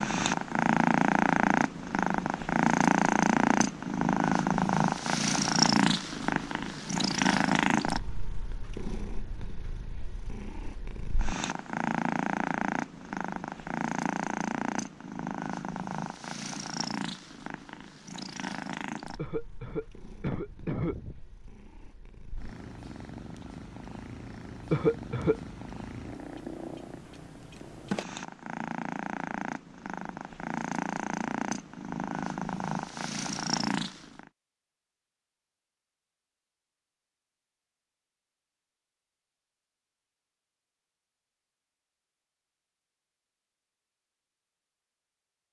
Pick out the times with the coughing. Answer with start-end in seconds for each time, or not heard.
19.1-21.2, 24.7-25.4.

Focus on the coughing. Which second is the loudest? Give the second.
25 s.